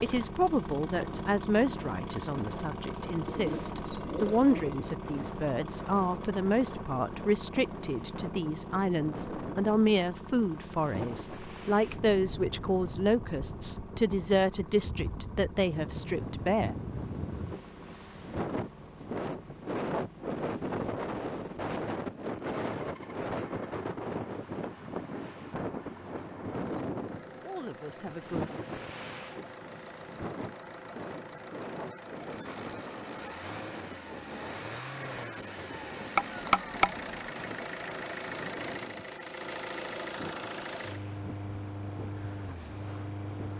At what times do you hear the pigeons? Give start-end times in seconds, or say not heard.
3.2-4.8.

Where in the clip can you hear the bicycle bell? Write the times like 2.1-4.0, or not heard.
36.1-37.4.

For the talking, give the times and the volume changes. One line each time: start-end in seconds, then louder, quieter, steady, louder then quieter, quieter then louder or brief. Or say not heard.
0.0-16.8 steady
27.4-28.4 brief.